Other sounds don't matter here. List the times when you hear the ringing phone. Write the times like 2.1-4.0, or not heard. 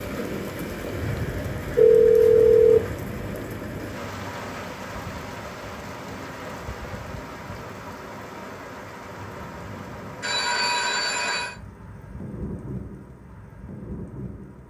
1.8-2.8, 10.2-11.6.